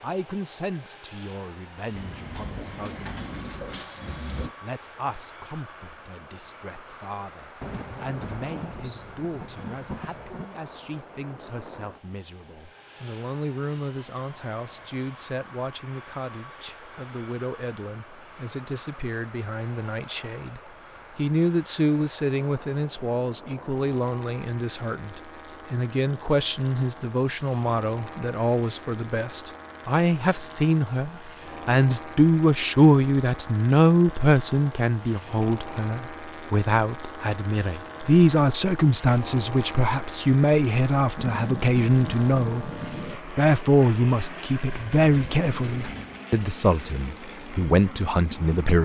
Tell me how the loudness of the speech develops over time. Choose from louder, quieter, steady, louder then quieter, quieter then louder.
louder.